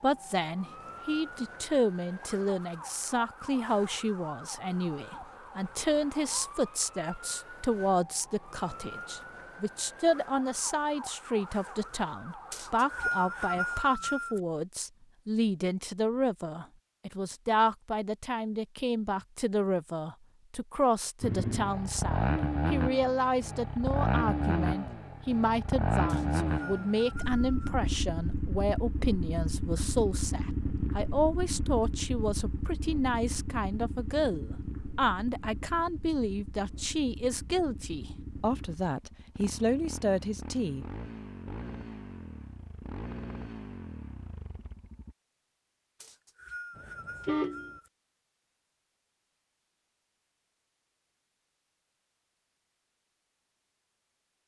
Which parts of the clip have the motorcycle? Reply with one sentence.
The motorcycle can be heard from 21.2 to 45.1 s.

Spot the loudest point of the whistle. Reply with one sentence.
The loudest moment of the whistle is at 13 seconds.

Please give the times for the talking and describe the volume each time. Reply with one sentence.
The talking can be heard from 0.0 to 40.9 s, at a steady volume.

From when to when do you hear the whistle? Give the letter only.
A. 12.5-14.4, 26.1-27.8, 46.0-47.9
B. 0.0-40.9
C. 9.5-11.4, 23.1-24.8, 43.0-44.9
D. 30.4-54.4
A.